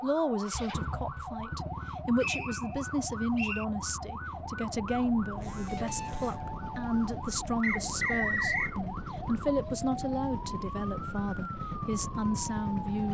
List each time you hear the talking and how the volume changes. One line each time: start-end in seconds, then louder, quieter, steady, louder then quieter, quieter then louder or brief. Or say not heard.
0.0-13.0 steady.